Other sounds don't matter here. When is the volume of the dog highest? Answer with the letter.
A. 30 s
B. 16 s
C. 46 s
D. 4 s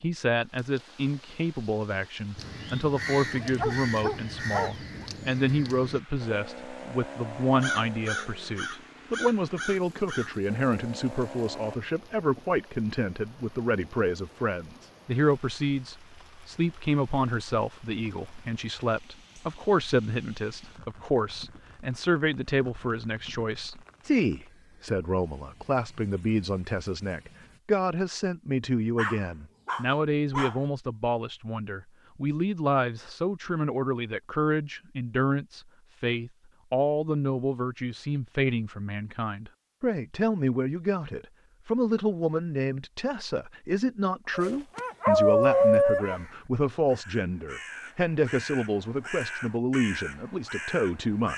C.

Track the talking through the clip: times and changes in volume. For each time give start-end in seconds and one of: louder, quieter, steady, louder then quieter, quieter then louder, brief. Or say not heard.
0.0-51.3 steady.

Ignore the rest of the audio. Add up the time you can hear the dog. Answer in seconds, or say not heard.
5 s.